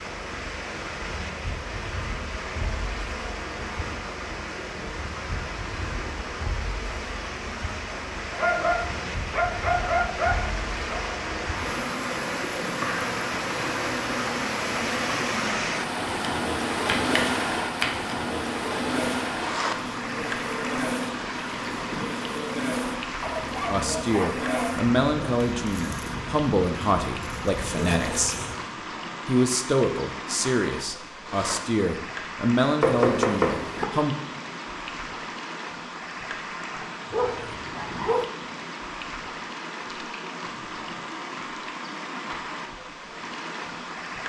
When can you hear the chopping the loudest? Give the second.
33 s.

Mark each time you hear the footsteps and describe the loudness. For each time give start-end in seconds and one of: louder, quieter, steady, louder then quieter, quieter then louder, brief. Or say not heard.
not heard.